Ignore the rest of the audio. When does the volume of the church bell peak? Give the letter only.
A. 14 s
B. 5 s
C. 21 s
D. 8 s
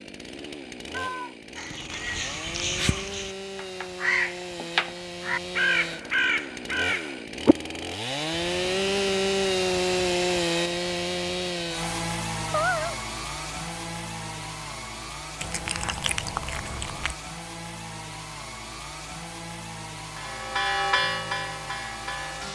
C.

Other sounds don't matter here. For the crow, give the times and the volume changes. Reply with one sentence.
The crow can be heard from 1.6 to 7.5 s, getting quieter then louder.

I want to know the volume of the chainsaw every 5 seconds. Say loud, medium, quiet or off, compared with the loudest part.
medium, loud, loud, medium, medium.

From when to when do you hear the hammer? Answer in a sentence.
You can't hear the hammer here.